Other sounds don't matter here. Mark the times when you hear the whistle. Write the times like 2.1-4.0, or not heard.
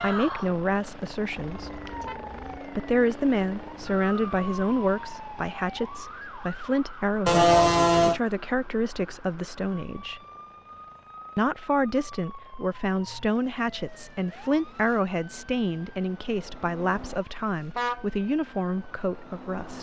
not heard.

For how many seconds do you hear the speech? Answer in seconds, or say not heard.
18 s.